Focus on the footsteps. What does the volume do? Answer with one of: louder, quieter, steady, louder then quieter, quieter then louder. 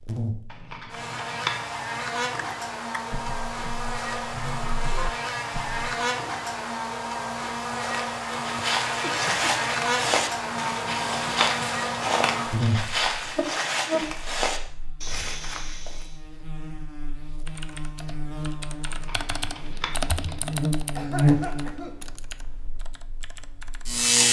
steady.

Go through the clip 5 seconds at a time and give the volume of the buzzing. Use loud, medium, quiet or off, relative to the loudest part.
medium, loud, loud, quiet, loud.